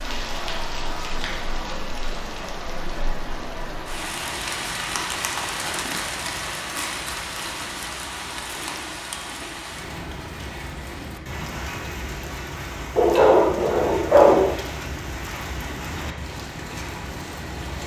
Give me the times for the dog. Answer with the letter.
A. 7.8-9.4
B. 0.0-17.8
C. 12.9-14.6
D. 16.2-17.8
C.